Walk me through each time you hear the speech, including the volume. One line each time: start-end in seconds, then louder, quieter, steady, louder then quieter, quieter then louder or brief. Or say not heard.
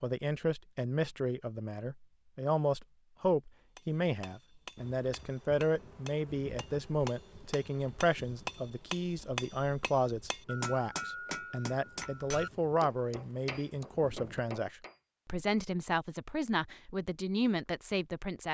0.0-18.4 steady.